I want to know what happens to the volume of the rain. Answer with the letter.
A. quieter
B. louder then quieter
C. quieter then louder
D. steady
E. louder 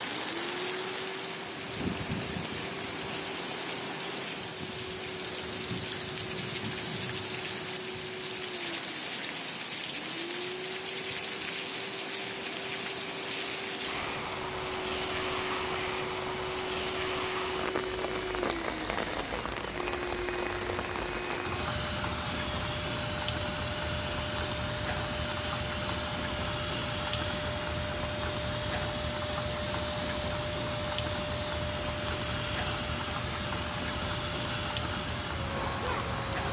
D.